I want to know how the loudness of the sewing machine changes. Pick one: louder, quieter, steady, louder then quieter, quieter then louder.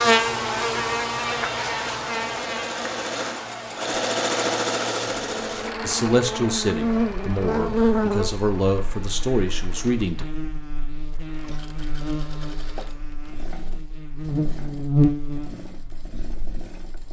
quieter.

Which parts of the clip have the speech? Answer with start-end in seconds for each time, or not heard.
5.8-10.2.